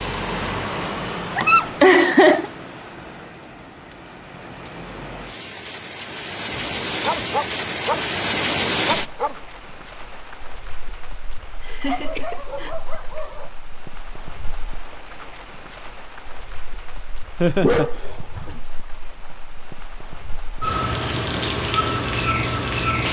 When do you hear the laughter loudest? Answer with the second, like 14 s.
2 s.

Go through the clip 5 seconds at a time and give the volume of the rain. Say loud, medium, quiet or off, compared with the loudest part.
medium, loud, quiet, quiet, loud.